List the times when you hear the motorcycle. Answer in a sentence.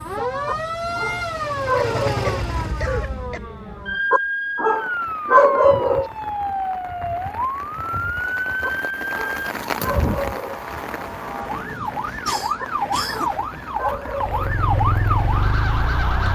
You can hear the motorcycle from 0.0 to 3.4 s and from 14.2 to 16.2 s.